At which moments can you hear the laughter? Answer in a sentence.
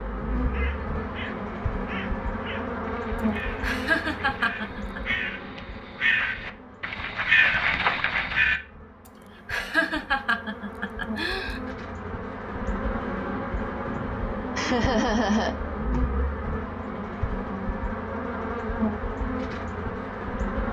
The laughter can be heard from 3.6 to 5.0 s, from 9.4 to 11.7 s and from 14.6 to 16.0 s.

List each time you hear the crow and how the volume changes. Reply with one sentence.
The crow can be heard from 0.2 to 8.6 s, getting louder.